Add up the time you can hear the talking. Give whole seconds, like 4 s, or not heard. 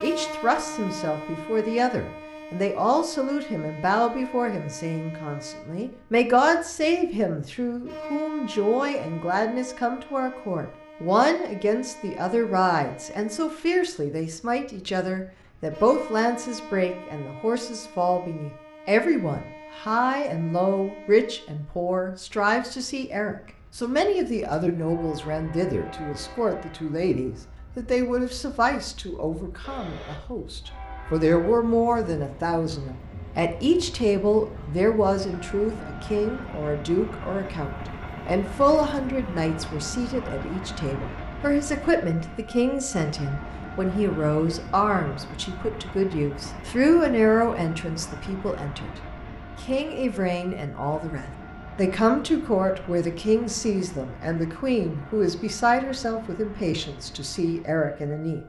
58 s.